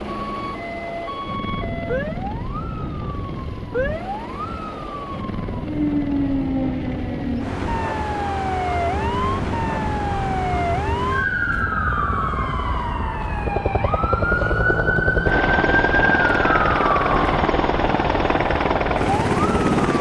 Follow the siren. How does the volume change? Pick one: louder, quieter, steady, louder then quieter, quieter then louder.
louder.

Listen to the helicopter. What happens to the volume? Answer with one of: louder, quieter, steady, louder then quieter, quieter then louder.
louder.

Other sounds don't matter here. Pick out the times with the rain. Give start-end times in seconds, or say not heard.
not heard.